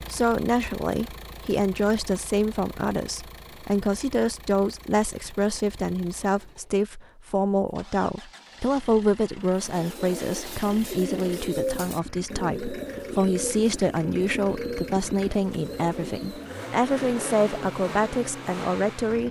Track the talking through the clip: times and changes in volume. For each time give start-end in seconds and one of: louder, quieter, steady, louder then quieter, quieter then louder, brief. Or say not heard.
0.0-19.2 steady.